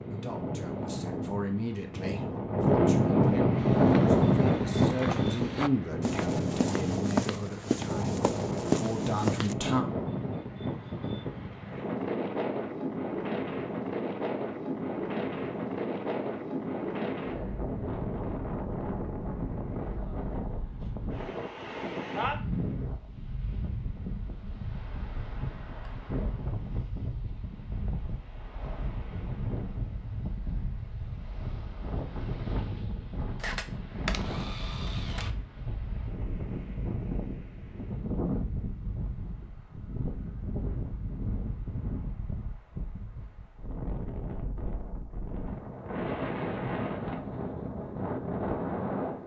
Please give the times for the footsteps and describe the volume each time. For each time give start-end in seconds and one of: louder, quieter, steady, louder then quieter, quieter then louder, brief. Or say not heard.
3.5-9.6 louder.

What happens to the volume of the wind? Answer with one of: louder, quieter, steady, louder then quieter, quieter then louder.
quieter.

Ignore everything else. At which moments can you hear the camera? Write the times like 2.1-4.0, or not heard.
33.4-35.3.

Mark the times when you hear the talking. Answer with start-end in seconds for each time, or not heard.
0.0-9.8.